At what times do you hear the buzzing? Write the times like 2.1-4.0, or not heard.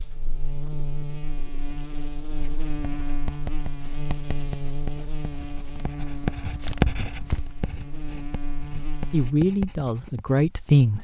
0.0-9.3.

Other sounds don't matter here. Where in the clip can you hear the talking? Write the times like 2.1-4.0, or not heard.
9.1-10.9.